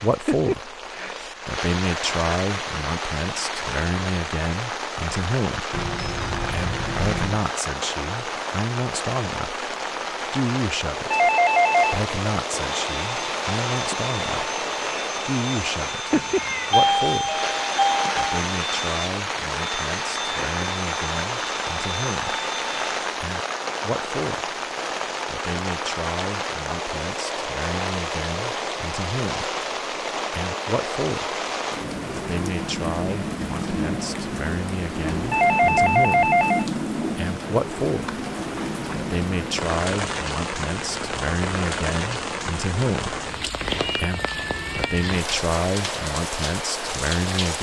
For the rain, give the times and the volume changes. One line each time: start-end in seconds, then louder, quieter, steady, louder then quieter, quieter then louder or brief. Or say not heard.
0.0-47.5 steady.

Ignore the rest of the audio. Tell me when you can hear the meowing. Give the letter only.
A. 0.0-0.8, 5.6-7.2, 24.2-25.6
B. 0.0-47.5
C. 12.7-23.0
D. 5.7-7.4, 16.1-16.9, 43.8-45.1
D.